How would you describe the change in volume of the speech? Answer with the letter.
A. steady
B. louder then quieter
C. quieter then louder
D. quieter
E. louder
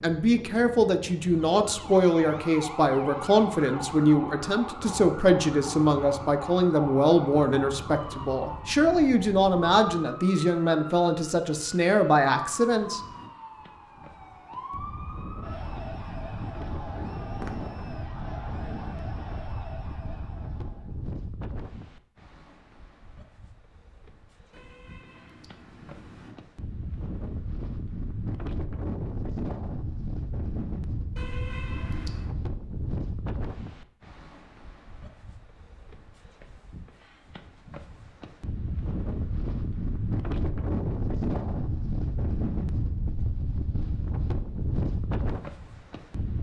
A.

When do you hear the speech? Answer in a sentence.
You can hear the speech from 0.0 to 13.0 s.